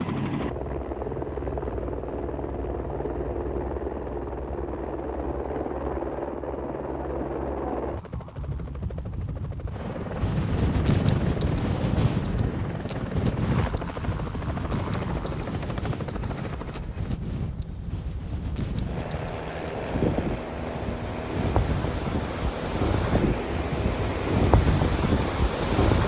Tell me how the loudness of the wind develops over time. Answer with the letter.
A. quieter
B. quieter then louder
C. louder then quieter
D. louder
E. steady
B.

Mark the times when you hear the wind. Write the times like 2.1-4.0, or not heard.
9.9-26.0.